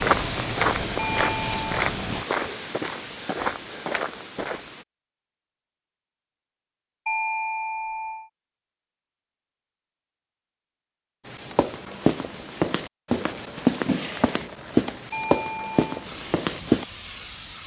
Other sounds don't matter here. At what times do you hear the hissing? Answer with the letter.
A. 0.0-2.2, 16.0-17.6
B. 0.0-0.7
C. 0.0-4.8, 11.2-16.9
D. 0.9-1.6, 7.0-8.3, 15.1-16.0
A.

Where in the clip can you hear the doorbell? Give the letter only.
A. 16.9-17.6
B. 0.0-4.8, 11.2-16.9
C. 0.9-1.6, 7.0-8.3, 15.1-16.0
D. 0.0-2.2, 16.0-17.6
C.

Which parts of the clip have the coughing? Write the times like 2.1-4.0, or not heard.
13.8-14.5.